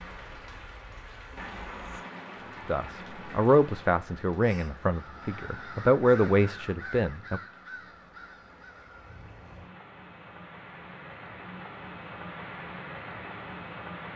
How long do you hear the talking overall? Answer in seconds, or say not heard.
5 s.